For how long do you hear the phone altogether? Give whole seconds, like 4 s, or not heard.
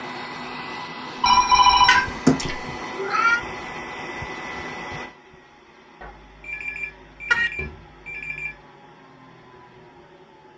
4 s.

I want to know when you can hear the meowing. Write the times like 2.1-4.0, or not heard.
1.9-3.4, 7.3-7.8.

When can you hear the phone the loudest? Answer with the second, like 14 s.
2 s.